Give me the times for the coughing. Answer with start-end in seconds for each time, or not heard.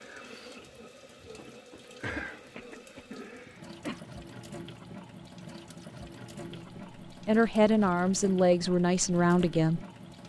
2.0-4.0.